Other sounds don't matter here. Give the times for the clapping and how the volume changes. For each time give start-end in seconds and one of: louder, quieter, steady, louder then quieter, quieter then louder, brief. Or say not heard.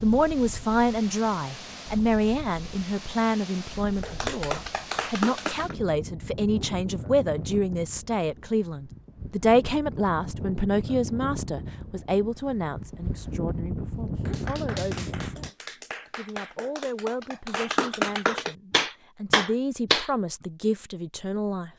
4.0-5.8 brief
14.2-20.1 louder.